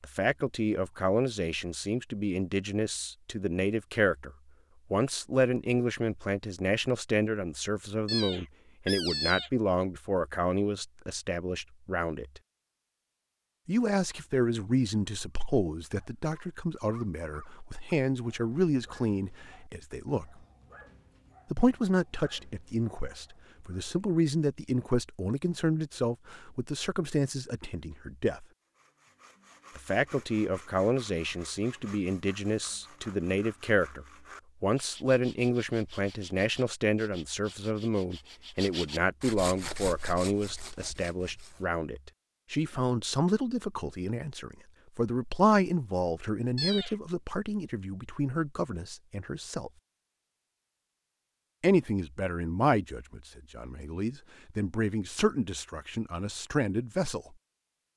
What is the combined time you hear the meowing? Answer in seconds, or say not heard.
2 s.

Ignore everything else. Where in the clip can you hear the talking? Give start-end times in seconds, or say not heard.
0.0-4.3, 4.9-12.4, 13.7-20.4, 21.5-28.4, 29.8-49.7, 51.6-57.4.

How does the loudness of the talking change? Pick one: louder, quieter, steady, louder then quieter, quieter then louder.
steady.